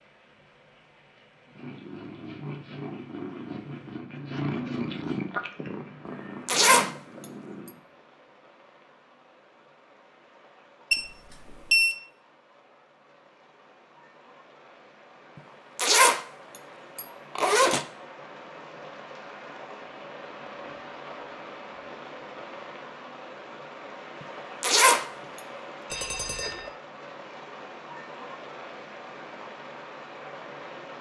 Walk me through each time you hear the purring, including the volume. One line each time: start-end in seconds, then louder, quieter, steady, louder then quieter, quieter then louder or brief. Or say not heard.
1.4-7.8 louder then quieter.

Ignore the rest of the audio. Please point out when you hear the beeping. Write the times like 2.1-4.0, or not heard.
10.9-11.9, 25.9-26.7.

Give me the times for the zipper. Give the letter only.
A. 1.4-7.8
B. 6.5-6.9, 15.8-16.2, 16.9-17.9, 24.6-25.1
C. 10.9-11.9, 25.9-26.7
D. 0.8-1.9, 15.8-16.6
B.